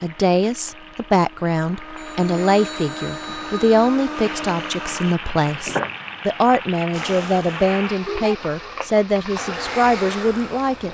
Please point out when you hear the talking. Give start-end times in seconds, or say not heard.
0.0-10.8.